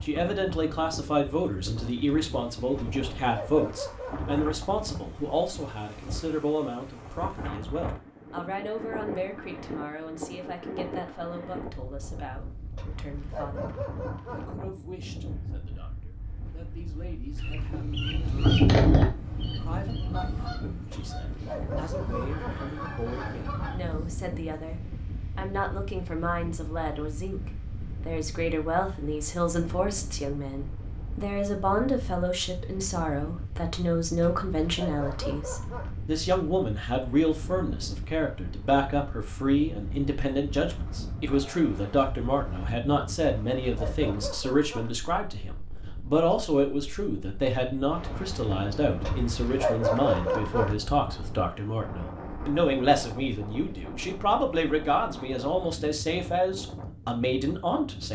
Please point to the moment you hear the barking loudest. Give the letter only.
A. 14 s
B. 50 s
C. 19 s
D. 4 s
B.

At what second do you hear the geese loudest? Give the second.
19 s.